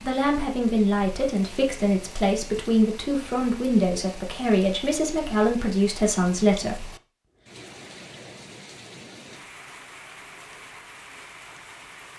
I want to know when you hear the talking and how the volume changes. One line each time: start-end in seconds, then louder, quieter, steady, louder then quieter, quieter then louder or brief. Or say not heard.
0.0-6.9 steady.